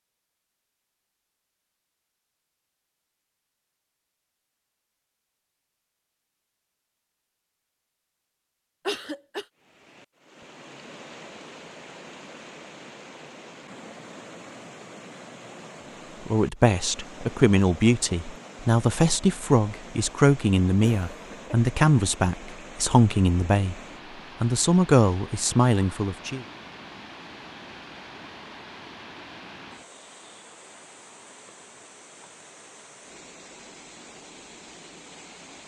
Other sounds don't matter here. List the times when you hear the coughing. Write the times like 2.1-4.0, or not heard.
8.8-9.4, 20.8-21.6.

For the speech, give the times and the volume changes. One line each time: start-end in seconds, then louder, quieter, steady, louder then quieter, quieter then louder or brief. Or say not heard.
16.2-23.8 steady
24.4-26.4 brief.